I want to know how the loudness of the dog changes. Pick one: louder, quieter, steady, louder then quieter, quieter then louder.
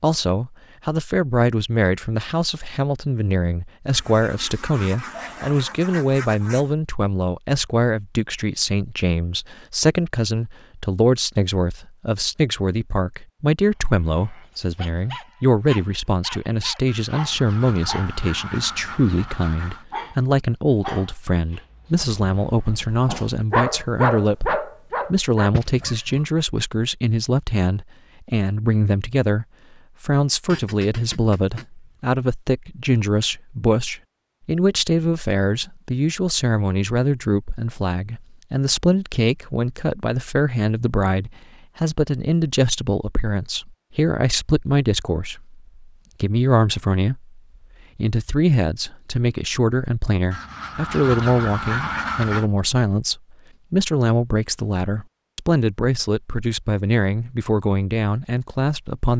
louder.